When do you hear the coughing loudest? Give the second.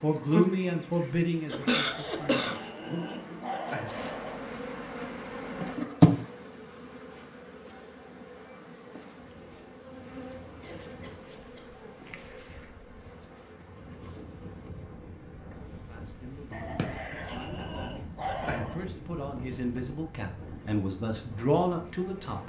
2 s.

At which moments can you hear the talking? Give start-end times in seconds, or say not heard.
0.0-3.4, 15.7-22.4.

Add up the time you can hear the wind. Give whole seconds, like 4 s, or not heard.
13 s.